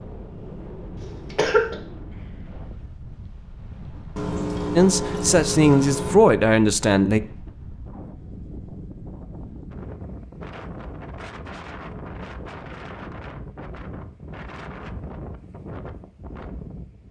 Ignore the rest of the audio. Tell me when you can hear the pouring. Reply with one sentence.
You can hear the pouring from 4.2 to 6.2 s.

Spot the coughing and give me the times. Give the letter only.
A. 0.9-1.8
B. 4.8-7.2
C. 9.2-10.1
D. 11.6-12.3
A.